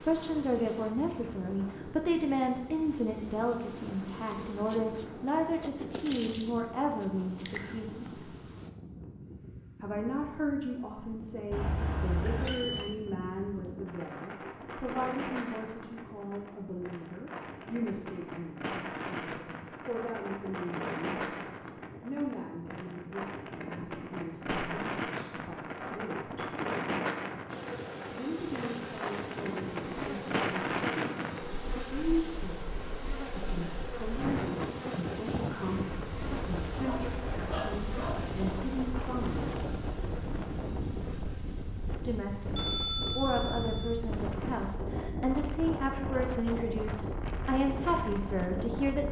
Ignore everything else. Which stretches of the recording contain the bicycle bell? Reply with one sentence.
You can hear the bicycle bell from 11.5 to 12.9 s and from 42.5 to 44.0 s.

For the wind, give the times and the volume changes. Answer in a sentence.
The wind can be heard from 0.0 to 49.0 s, getting louder.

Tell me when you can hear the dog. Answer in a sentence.
You can hear the dog from 36.8 to 38.4 s.